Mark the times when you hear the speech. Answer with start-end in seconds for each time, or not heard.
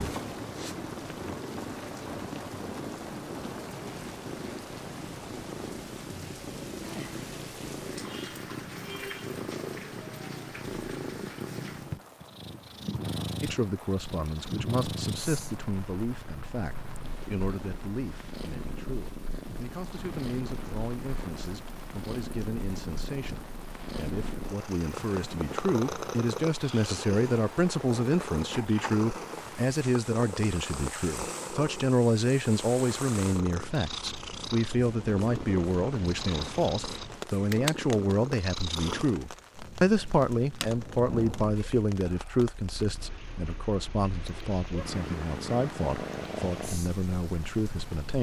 13.4-48.1.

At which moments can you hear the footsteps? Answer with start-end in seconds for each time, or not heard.
not heard.